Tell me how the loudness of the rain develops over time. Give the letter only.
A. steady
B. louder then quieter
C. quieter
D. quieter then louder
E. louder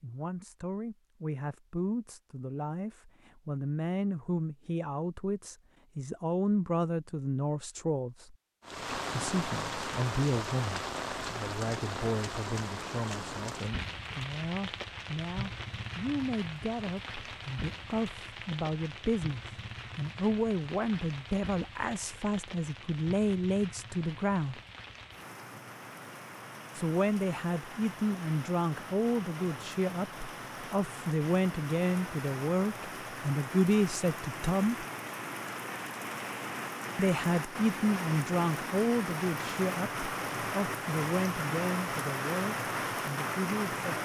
D.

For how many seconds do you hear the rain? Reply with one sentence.
You can hear the rain for 35 seconds altogether.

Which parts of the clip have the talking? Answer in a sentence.
The talking can be heard from 0.0 to 8.3 s, from 9.2 to 24.6 s, from 26.8 to 34.9 s and from 37.0 to 43.9 s.